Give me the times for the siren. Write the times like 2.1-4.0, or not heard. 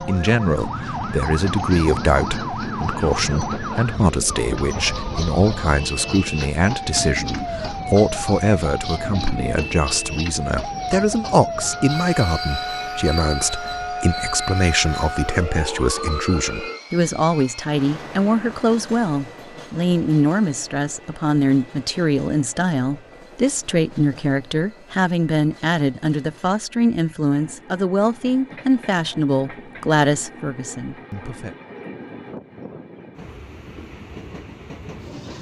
0.0-16.8.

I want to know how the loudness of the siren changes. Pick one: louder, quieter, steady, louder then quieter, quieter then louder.
steady.